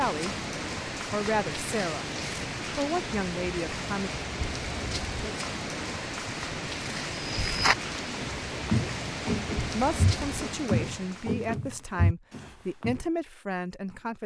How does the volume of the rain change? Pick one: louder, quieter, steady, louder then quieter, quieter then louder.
steady.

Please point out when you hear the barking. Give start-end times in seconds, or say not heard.
not heard.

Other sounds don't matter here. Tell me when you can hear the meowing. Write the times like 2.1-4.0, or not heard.
not heard.